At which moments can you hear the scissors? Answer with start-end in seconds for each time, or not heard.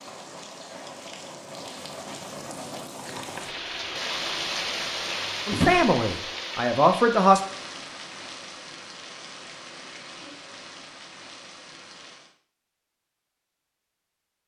not heard.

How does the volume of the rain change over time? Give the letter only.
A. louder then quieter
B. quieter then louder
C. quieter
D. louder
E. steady
A.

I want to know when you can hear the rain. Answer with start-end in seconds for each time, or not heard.
0.0-12.3.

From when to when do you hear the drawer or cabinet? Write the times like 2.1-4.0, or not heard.
5.5-6.0.